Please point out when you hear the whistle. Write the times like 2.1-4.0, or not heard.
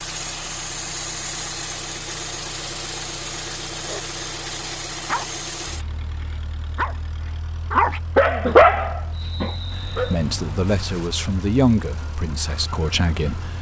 9.1-10.1.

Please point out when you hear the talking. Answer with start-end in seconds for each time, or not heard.
9.8-13.5.